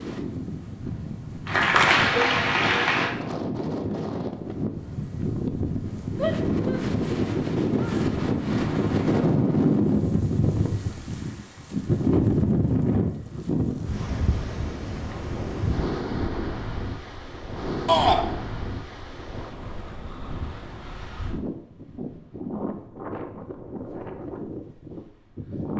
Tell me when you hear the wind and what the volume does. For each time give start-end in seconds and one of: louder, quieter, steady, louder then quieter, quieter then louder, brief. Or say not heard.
0.0-25.7 louder then quieter.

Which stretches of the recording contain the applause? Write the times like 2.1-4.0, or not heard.
1.4-3.1.